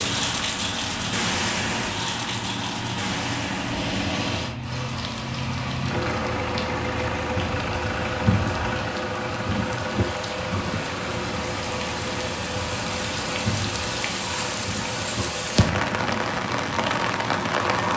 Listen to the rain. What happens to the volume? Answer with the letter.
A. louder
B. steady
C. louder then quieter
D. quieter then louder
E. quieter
D.